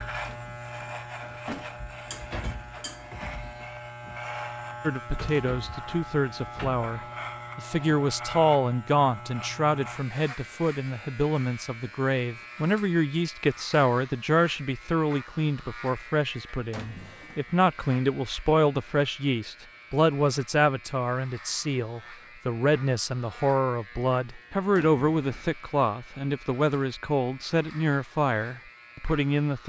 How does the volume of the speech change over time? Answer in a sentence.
The loudness of the speech stays about the same.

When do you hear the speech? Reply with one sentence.
The speech can be heard from 4.8 to 29.6 s.